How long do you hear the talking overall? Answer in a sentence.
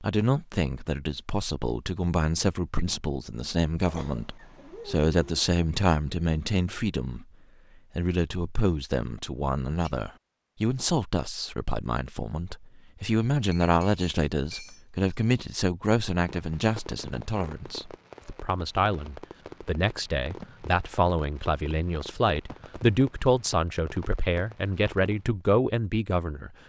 You can hear the talking for 26 seconds altogether.